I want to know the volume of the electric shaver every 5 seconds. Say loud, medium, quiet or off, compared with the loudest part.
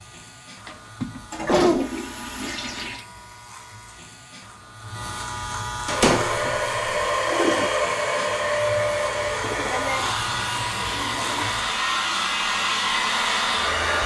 quiet, loud, loud.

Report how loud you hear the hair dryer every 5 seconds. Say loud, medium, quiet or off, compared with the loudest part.
off, loud, loud.